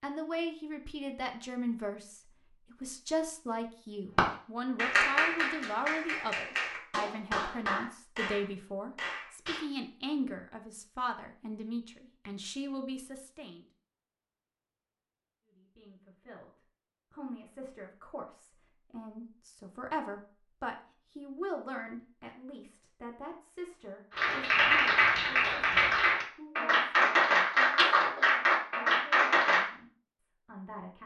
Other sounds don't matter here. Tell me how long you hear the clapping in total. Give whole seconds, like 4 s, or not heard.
11 s.